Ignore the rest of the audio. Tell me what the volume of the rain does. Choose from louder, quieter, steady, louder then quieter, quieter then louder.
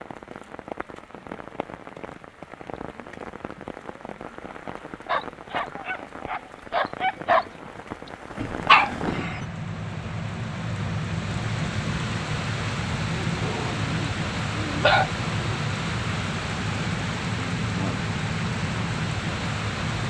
louder.